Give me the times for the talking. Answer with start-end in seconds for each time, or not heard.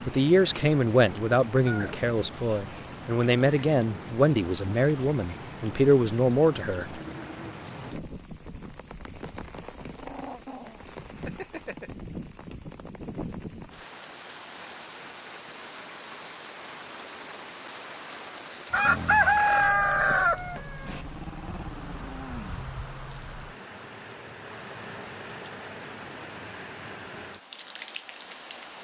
0.0-6.9.